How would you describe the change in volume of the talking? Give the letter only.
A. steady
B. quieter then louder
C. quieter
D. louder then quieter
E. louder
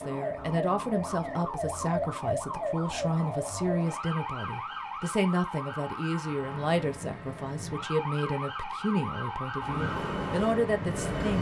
A.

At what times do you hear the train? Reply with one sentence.
The train can be heard from 9.6 to 11.3 s.